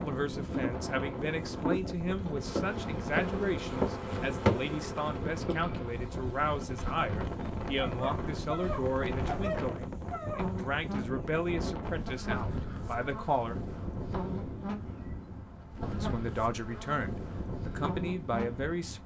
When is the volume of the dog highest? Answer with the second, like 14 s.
9 s.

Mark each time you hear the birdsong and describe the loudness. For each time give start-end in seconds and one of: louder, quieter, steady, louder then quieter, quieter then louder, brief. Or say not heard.
not heard.